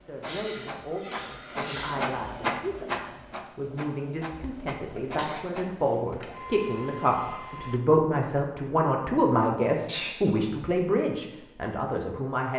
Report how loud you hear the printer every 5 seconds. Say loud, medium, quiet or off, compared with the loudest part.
loud, medium, off.